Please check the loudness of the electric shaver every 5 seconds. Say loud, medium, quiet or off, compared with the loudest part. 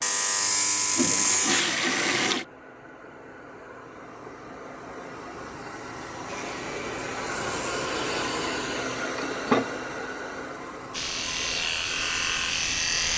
loud, quiet, loud.